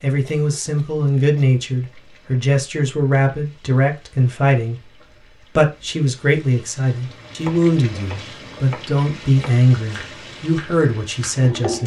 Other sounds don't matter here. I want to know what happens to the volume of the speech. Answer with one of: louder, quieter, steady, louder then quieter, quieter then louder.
steady.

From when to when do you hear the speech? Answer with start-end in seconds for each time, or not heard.
0.0-4.8, 5.5-11.8.